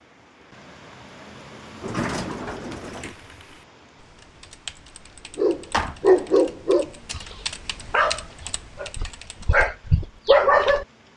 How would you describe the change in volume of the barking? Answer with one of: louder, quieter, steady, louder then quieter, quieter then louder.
quieter then louder.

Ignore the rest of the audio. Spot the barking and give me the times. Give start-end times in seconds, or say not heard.
5.3-10.8.